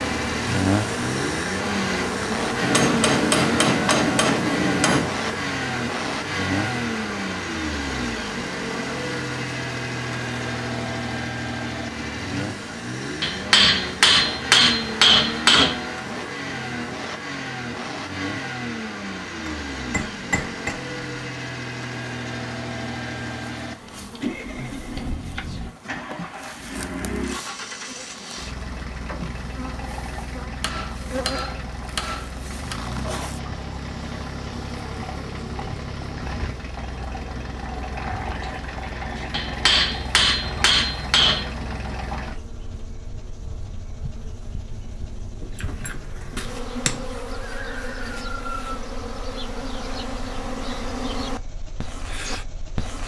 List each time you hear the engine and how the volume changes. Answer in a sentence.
The engine can be heard from 0.0 to 53.0 s, getting quieter.